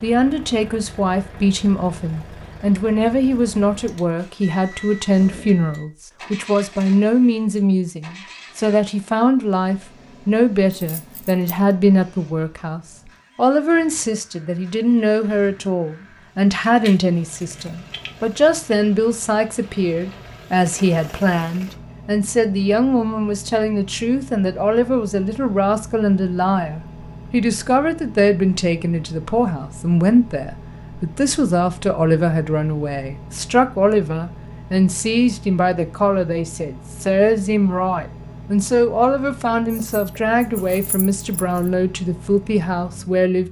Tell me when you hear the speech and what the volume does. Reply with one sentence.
The speech can be heard from 0.0 to 43.4 s, at a steady volume.